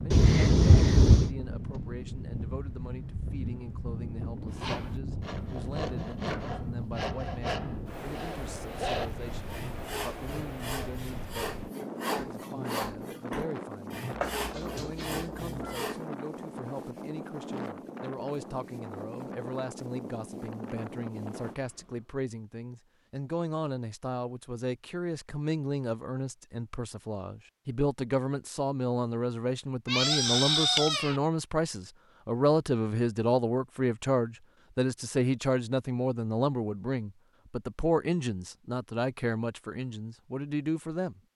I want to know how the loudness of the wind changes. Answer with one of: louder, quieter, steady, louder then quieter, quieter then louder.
steady.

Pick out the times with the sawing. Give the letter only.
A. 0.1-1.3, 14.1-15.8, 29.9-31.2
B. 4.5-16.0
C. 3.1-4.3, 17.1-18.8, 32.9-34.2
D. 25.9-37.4
B.